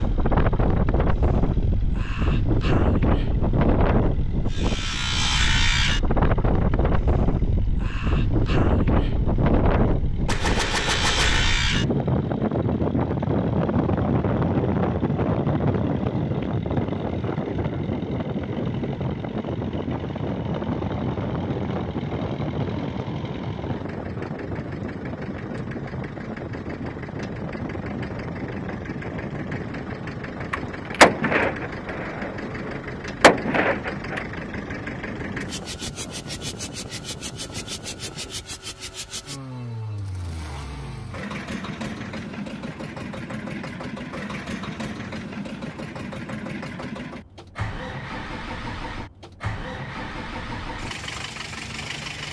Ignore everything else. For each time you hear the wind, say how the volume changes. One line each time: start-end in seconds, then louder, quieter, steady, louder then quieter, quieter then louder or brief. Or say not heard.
0.0-38.5 quieter.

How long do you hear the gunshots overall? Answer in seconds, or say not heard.
5 s.